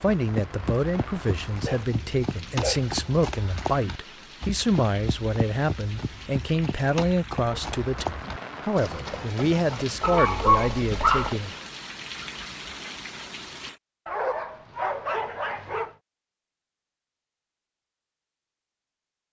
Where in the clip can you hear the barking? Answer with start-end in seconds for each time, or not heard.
1.6-3.0, 10.0-11.3, 14.1-15.9.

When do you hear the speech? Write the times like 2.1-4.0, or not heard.
0.0-11.5.